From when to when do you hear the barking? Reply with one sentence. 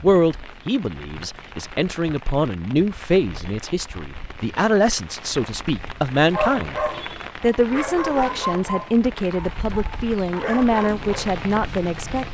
The barking can be heard from 6.2 to 11.3 s.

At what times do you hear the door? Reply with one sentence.
The door can't be heard in this clip.